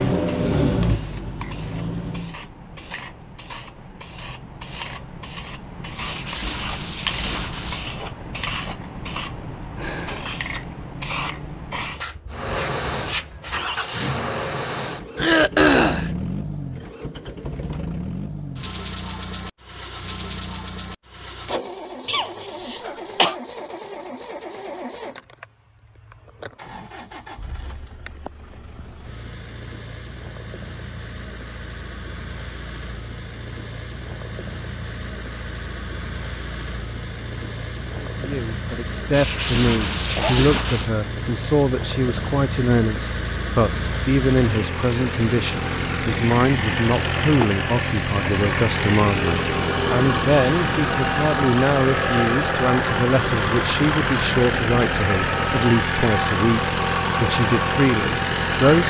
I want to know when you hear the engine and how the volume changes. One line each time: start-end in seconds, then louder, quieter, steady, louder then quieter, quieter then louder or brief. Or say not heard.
0.0-2.4 brief
12.3-58.8 quieter then louder.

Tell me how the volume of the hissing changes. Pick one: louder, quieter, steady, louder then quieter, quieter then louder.
louder.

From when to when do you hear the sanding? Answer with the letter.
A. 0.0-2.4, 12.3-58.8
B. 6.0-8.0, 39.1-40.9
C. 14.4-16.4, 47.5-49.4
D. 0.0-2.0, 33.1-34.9
B.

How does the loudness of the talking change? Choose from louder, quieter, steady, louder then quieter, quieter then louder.
steady.